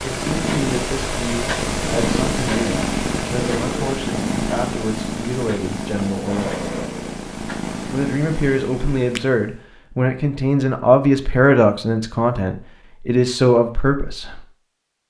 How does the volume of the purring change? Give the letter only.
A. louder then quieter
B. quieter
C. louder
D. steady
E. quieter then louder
B.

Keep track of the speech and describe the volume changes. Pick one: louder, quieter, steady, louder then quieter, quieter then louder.
louder.